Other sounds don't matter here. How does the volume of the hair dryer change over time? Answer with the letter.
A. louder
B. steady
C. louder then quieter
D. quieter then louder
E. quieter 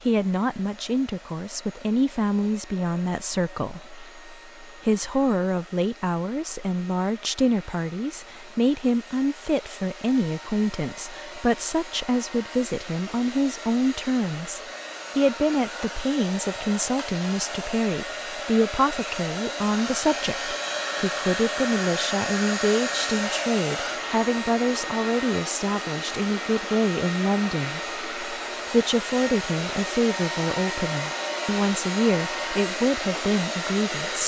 A.